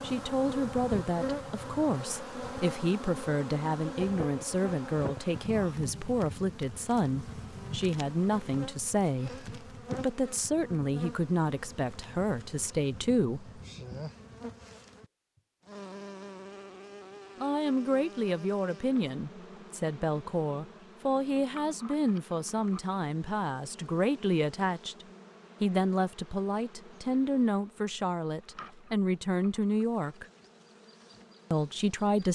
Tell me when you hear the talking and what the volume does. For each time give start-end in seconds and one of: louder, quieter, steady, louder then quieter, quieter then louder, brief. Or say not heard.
0.0-13.6 steady
17.4-30.2 steady
31.5-32.3 brief.